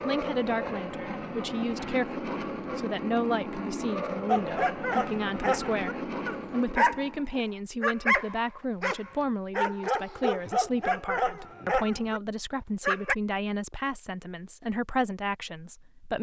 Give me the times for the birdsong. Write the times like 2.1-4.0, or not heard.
not heard.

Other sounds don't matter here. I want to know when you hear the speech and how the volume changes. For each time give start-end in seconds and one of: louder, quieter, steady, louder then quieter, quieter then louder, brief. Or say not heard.
0.0-16.1 steady.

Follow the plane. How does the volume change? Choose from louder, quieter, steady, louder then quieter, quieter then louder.
steady.